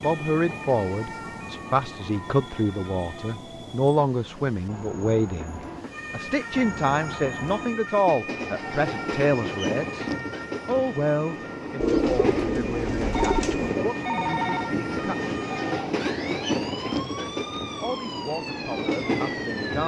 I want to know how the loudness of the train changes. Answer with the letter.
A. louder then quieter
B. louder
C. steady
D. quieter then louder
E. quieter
B.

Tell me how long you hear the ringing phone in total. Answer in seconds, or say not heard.
2 s.